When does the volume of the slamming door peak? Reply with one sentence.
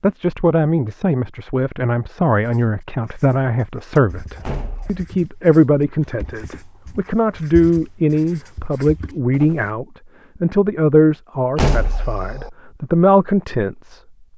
The loudest moment of the slamming door is at 12 seconds.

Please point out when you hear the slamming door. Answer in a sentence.
You can hear the slamming door from 4.5 to 5.0 s and from 11.6 to 12.5 s.